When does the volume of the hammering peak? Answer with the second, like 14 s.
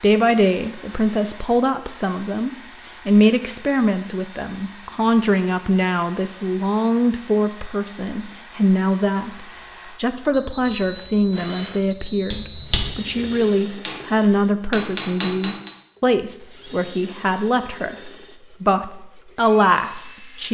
15 s.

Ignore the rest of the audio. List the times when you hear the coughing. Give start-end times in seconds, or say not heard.
not heard.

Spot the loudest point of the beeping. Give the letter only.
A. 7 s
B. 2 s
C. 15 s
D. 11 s
D.